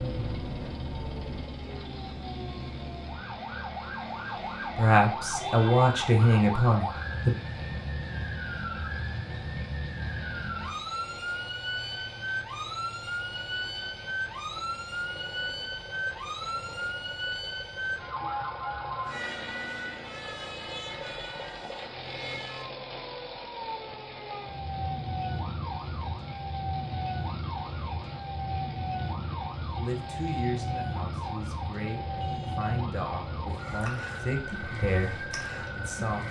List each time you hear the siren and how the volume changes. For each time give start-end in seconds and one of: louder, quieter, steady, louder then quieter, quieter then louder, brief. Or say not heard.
0.0-36.2 steady.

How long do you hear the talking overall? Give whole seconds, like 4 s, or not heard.
9 s.